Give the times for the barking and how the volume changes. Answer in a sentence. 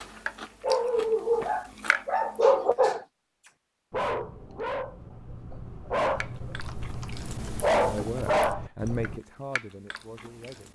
You can hear the barking from 0.1 to 9.2 s, getting quieter then louder.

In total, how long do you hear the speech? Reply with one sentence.
The speech can be heard for 3 seconds in total.